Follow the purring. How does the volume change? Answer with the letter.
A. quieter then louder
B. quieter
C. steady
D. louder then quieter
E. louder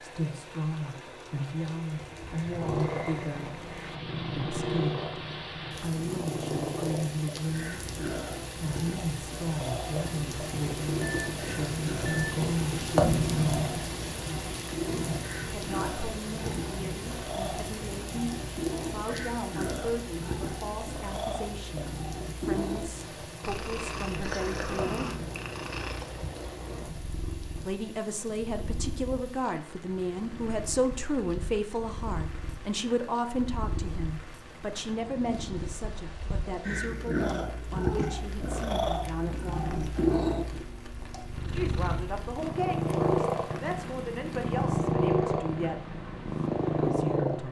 E.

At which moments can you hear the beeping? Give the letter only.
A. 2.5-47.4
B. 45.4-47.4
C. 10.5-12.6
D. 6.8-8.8
C.